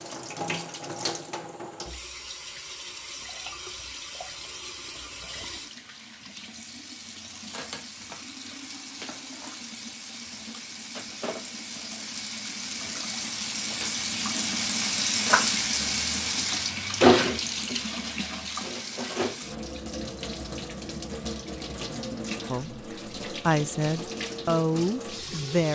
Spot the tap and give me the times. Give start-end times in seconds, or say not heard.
0.0-25.7.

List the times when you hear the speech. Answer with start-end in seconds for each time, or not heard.
22.4-25.7.